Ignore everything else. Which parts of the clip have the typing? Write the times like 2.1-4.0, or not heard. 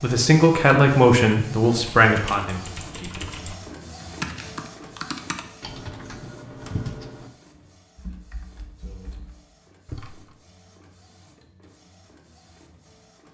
1.7-7.3, 8.0-10.2.